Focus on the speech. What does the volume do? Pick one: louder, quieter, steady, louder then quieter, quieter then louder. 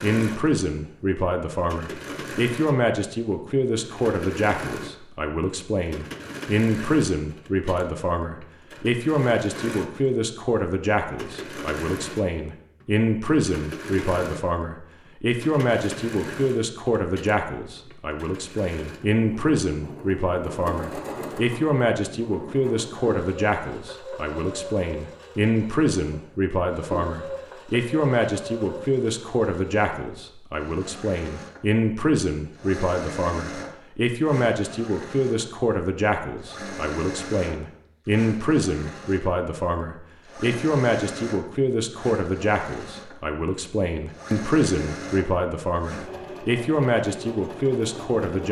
steady.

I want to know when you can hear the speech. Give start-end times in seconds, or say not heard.
0.0-48.4.